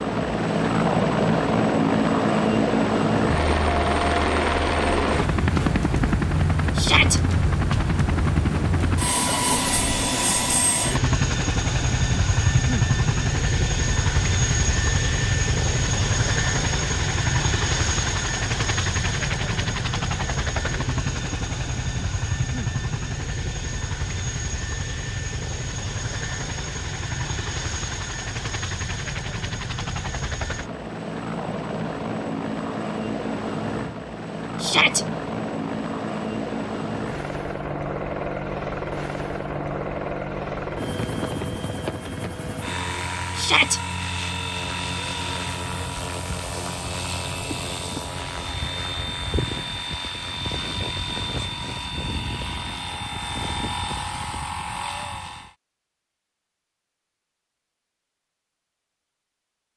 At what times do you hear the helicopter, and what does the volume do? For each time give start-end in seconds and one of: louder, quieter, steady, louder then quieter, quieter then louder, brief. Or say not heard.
0.0-55.5 quieter.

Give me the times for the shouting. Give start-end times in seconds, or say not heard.
6.8-7.2, 34.6-35.0, 43.4-43.8.